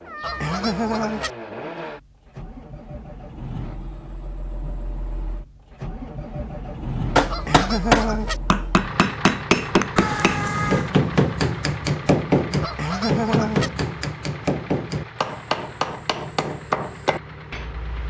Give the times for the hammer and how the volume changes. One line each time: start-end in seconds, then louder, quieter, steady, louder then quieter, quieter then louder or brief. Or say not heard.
7.2-18.0 quieter.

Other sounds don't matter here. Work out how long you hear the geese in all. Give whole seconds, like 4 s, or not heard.
3 s.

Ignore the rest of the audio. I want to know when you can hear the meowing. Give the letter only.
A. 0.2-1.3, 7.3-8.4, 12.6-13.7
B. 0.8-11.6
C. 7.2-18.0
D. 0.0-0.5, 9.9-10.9
D.